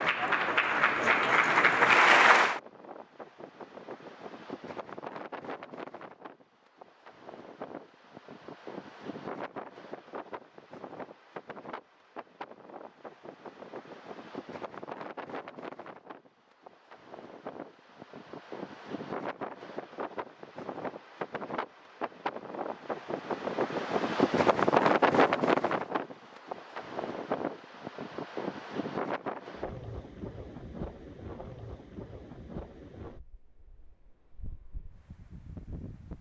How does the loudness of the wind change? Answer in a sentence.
The loudness of the wind goes up, then down.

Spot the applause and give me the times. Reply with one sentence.
You can hear the applause from 0.0 to 2.6 s.